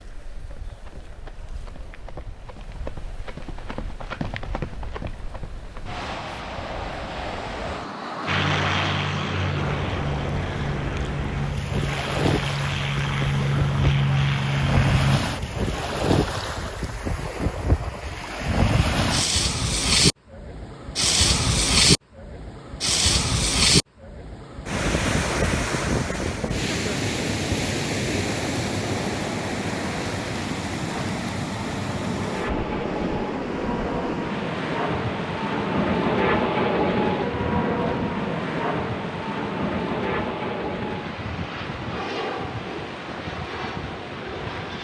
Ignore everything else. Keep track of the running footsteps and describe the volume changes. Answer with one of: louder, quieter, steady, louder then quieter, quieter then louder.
louder then quieter.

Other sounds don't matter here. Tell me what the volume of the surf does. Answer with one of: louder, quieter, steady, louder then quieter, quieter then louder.
louder then quieter.